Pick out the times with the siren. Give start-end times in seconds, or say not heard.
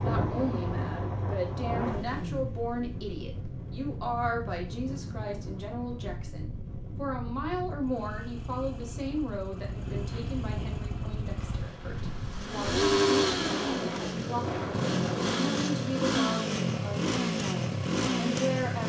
not heard.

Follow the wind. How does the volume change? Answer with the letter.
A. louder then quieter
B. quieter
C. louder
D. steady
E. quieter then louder
E.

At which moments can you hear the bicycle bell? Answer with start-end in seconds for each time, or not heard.
not heard.